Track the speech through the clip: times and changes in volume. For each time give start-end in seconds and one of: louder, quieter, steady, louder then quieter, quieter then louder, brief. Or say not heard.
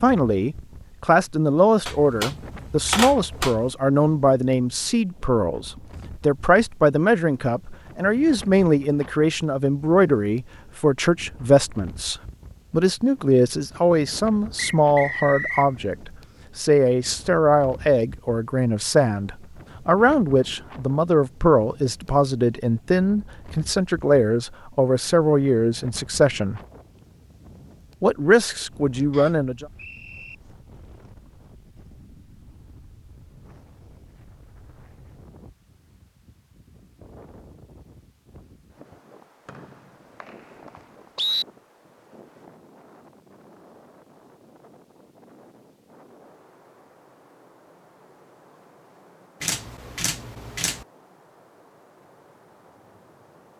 0.0-26.6 steady
28.0-29.6 brief.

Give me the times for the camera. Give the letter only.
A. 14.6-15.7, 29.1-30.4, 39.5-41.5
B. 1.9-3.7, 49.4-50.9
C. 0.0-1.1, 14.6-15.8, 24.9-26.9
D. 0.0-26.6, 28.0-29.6
B.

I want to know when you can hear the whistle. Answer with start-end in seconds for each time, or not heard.
14.6-15.7, 29.1-30.4, 39.5-41.5.